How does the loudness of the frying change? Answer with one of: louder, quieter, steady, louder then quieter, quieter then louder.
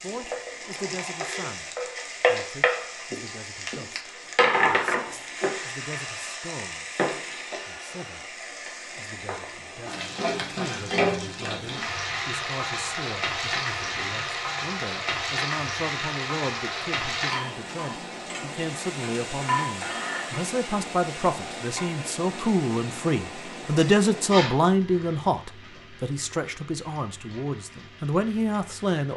quieter.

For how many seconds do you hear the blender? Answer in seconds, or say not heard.
not heard.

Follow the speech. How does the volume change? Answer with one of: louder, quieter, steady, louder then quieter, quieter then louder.
louder.